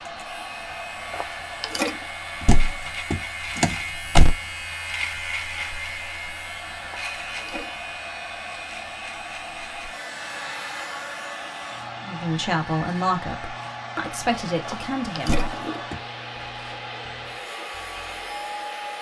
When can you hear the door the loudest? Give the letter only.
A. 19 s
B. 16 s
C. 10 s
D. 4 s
D.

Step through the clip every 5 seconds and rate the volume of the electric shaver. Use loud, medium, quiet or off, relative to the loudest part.
loud, loud, medium, medium.